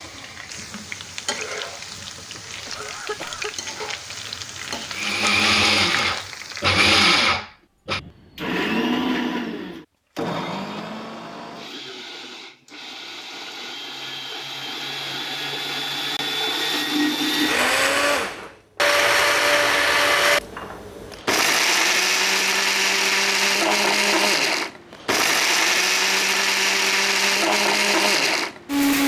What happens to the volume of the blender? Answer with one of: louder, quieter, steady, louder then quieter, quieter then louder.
quieter then louder.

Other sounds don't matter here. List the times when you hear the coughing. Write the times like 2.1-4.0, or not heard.
2.6-3.5.